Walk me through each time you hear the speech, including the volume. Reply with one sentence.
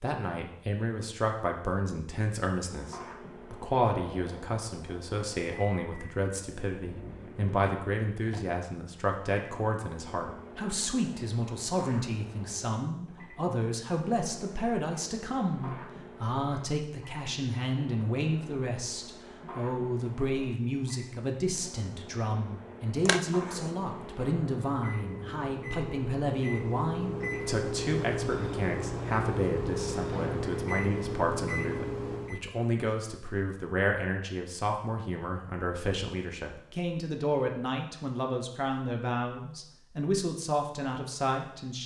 You can hear the speech from 0.0 to 41.8 s, at a steady volume.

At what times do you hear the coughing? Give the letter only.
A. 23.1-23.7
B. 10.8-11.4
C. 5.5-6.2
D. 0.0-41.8
A.